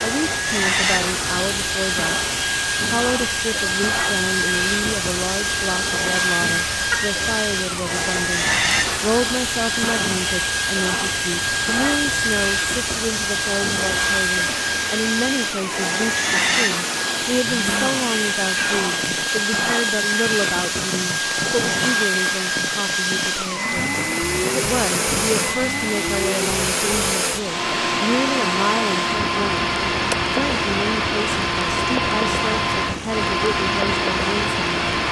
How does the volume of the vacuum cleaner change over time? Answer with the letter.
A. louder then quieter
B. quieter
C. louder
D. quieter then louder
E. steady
E.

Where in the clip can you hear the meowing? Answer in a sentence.
You can hear the meowing from 6.9 to 7.4 s and from 18.6 to 19.3 s.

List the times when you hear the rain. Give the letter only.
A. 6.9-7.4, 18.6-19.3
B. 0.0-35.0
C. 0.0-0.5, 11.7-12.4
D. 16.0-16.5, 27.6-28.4
B.